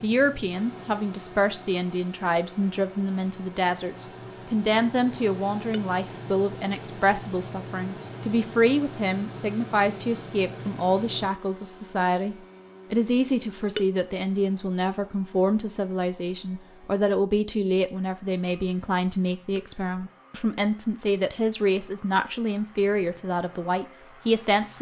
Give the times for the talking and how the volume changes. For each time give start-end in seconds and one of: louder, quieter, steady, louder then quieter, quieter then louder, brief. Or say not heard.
0.0-24.7 steady.